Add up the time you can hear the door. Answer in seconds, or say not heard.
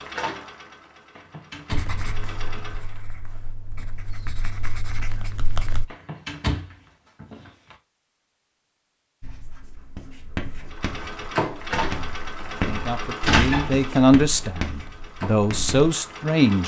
4 s.